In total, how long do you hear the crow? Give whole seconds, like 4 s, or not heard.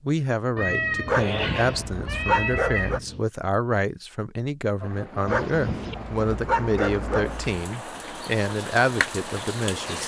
not heard.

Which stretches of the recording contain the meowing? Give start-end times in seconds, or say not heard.
0.6-3.2, 5.2-6.0.